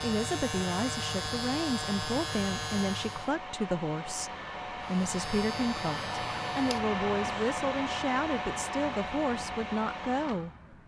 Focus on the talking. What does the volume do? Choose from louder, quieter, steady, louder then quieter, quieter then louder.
steady.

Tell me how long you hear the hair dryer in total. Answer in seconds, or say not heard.
11 s.